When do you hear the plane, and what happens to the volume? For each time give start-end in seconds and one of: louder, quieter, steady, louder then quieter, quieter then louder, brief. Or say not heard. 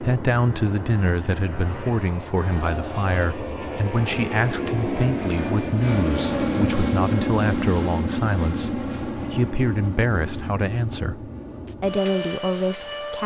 0.0-13.2 louder then quieter.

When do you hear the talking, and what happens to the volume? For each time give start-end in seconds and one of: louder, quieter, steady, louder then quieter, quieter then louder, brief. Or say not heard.
0.0-13.2 steady.